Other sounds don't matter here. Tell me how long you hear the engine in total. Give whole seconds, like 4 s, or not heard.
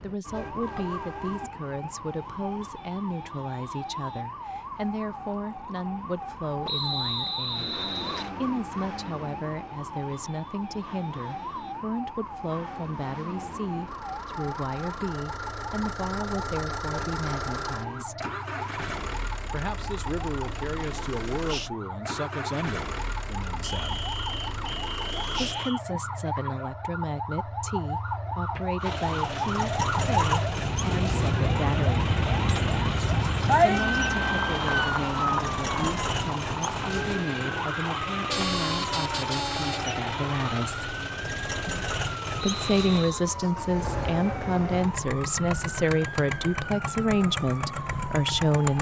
38 s.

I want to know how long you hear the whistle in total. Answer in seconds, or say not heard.
5 s.